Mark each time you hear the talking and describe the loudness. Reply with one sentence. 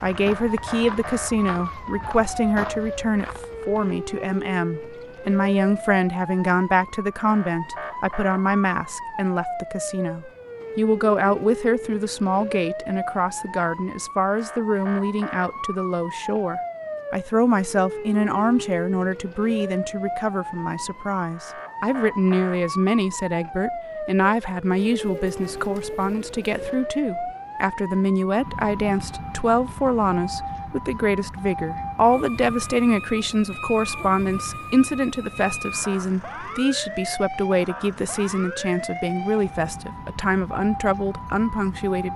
You can hear the talking from 0.0 to 42.1 s, at a steady volume.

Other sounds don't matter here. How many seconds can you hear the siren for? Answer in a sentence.
You can hear the siren for 42 seconds altogether.